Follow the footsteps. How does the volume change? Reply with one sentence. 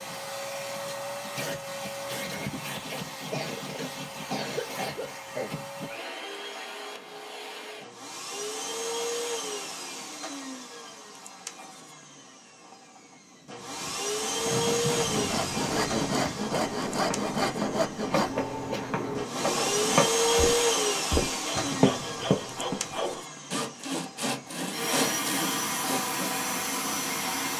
The volume of the footsteps goes up.